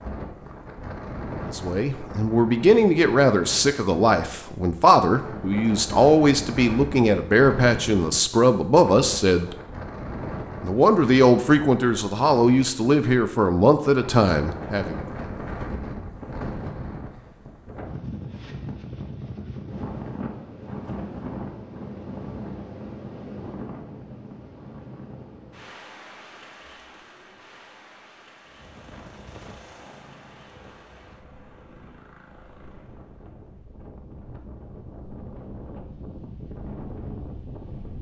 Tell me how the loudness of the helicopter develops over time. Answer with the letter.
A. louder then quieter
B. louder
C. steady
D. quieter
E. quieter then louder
D.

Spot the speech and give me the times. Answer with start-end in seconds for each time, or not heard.
1.5-9.6, 10.6-15.0.